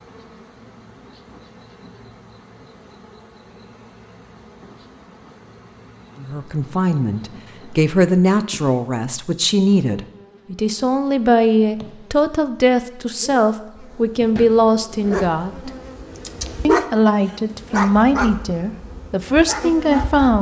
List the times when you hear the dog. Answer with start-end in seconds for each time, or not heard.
15.0-20.3.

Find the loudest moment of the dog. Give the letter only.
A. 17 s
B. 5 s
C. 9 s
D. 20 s
A.